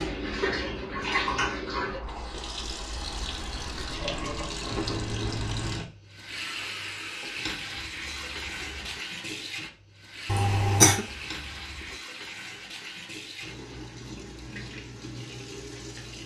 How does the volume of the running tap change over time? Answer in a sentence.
The loudness of the running tap goes down.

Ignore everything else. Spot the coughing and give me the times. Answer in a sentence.
You can hear the coughing from 10.2 to 11.1 s.